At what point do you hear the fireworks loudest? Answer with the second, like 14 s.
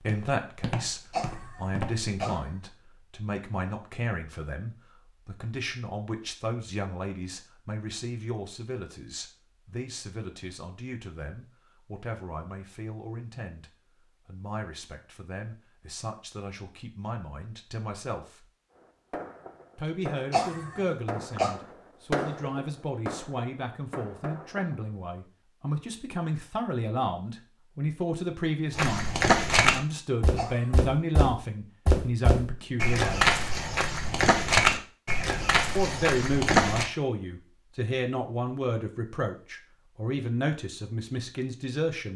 22 s.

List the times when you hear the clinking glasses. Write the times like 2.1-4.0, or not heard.
not heard.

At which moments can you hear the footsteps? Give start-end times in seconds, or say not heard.
0.0-2.1, 28.8-36.9.